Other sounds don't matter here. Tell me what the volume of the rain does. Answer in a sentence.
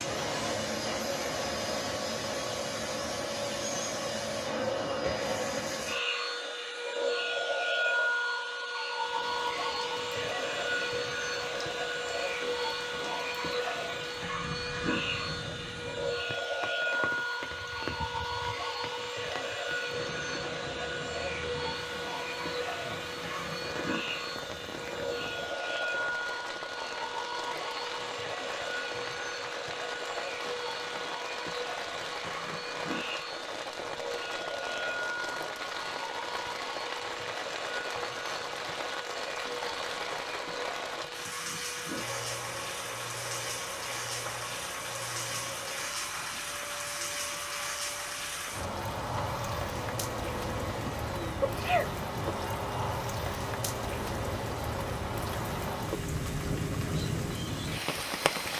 The loudness of the rain goes up.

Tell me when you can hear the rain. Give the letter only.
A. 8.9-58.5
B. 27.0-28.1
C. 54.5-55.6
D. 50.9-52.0
A.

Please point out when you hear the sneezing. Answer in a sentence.
The sneezing can be heard from 50.9 to 52.0 s.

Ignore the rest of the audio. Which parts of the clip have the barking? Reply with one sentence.
The barking can't be heard in this clip.